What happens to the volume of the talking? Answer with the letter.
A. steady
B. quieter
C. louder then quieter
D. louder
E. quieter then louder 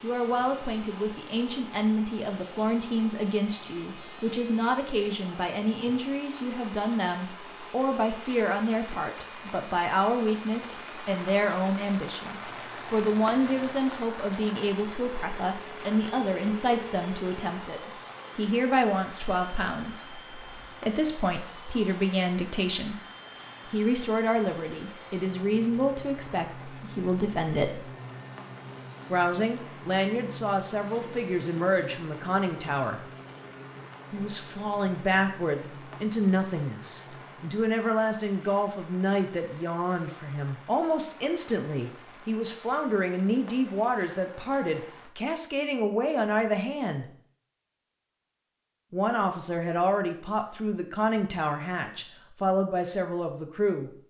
A.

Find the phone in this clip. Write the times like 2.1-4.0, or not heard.
not heard.